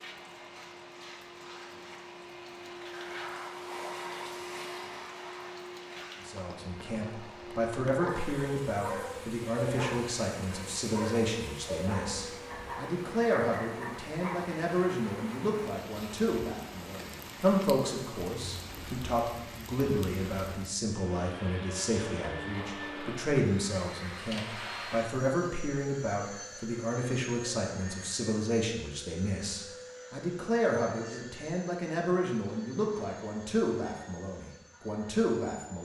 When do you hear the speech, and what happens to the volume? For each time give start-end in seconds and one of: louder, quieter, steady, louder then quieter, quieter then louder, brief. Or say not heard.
6.2-35.7 steady.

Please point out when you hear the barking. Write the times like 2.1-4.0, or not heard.
7.9-14.4.